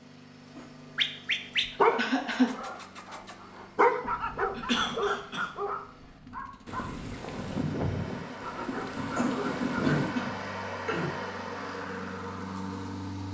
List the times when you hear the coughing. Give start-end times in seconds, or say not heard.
1.9-2.5, 4.5-5.5, 9.2-11.2.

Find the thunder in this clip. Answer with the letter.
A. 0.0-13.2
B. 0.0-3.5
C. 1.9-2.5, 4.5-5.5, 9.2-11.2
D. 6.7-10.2
D.